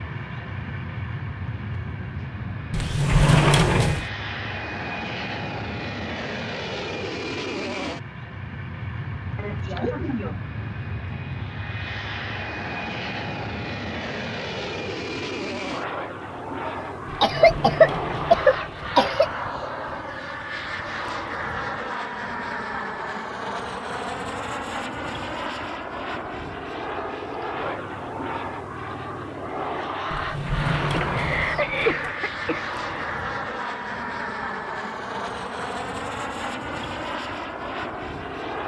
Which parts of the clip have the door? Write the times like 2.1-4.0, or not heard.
2.7-4.0, 17.3-18.9, 30.1-32.1.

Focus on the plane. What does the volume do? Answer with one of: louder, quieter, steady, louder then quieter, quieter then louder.
steady.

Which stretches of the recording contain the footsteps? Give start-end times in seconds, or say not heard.
not heard.